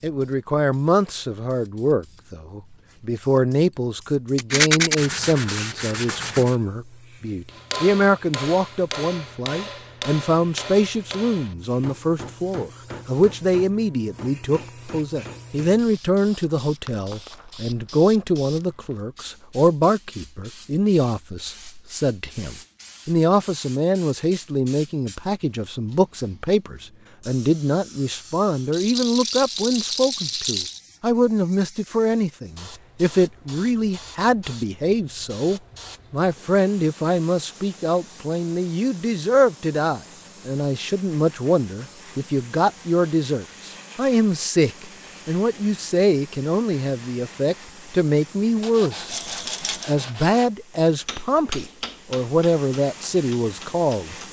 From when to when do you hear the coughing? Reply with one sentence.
The coughing can't be heard in this clip.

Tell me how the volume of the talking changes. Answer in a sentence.
The loudness of the talking stays about the same.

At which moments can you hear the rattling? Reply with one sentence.
The rattling can be heard from 4.3 to 5.0 s, from 28.7 to 30.8 s and from 49.1 to 49.9 s.